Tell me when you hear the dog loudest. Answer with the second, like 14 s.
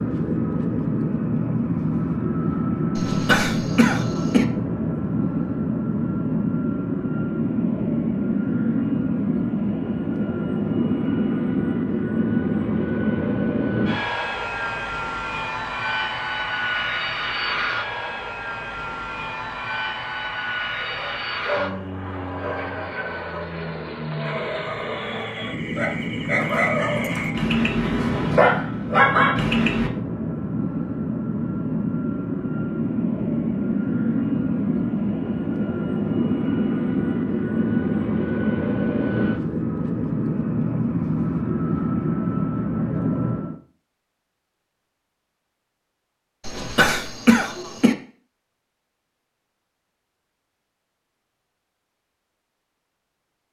29 s.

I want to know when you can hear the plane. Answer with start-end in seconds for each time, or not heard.
0.0-43.6.